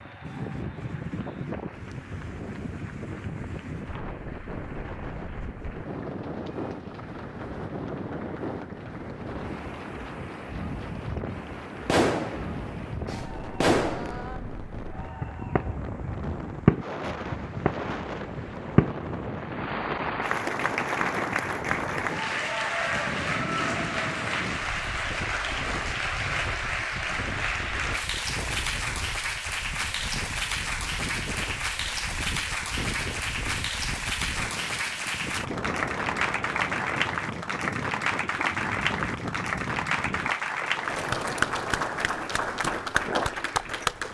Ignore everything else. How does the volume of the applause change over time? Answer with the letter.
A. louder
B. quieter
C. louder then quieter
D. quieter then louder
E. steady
A.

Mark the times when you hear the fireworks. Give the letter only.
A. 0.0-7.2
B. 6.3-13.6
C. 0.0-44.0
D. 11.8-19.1
D.